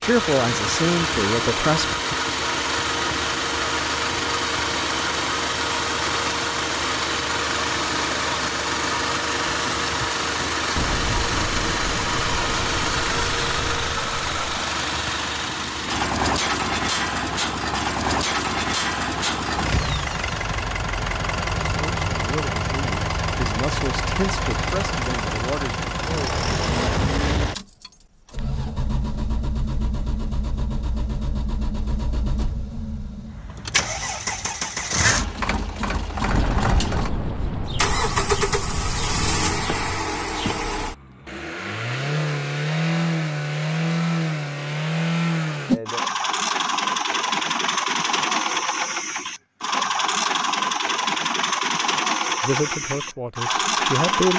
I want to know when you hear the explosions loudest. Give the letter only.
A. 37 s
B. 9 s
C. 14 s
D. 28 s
A.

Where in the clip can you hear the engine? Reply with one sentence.
You can hear the engine from 0.0 to 54.3 s.